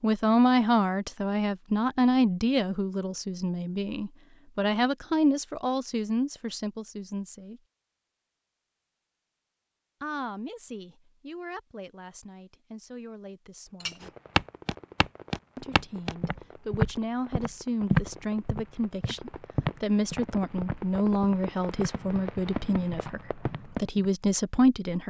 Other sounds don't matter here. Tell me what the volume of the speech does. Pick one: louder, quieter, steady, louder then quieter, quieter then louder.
quieter then louder.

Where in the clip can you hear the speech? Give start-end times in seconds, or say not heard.
0.0-7.6, 10.0-14.1, 15.6-25.0.